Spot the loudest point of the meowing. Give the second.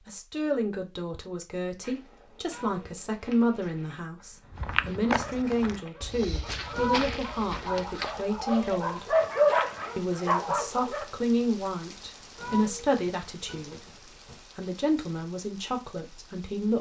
7 s.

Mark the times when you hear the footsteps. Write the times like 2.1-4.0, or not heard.
1.8-9.2.